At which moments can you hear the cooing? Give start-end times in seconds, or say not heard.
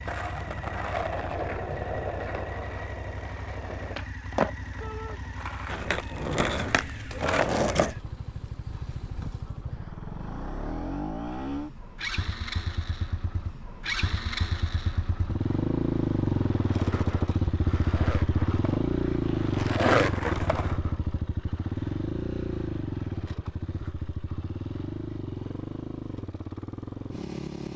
not heard.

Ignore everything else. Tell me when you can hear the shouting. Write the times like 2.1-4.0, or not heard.
4.8-5.2.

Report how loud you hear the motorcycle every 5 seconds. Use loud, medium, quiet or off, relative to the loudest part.
quiet, quiet, medium, loud, medium, medium.